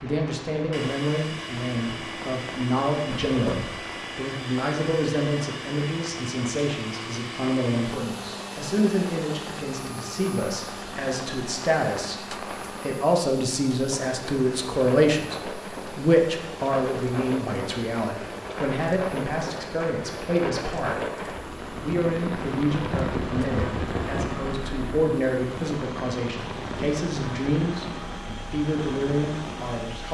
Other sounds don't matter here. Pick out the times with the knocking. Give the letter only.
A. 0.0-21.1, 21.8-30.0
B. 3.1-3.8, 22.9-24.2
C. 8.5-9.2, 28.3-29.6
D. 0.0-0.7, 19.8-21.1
B.